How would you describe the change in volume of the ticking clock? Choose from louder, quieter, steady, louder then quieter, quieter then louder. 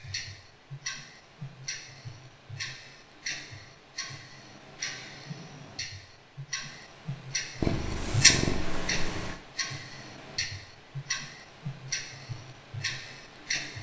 louder then quieter.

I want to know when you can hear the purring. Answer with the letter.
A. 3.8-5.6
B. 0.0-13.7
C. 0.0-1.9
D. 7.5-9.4
D.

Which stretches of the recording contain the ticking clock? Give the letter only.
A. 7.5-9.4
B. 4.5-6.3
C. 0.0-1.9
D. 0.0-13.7
D.